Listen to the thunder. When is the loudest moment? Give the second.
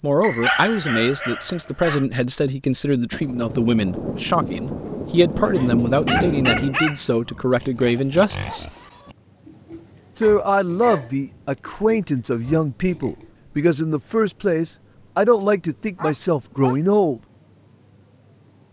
6 s.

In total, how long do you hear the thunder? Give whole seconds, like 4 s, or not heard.
4 s.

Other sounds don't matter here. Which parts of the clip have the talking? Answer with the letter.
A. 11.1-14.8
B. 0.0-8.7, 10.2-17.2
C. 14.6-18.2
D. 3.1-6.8
B.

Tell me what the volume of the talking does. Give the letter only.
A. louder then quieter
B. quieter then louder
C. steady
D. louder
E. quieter
C.